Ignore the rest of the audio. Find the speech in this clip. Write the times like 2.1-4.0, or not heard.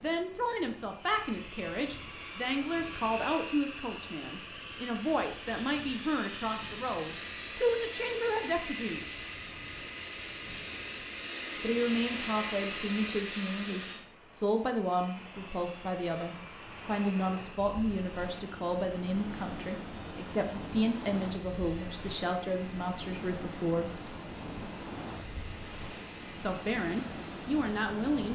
0.0-9.2, 11.6-24.1, 26.4-28.2.